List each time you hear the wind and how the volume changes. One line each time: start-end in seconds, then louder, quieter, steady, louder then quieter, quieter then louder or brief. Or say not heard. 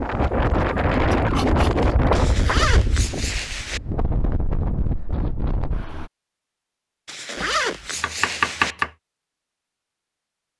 0.0-6.1 quieter.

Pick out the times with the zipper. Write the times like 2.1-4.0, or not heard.
2.1-3.8, 7.0-8.8.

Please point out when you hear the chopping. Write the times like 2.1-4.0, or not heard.
1.1-2.6, 7.3-8.9.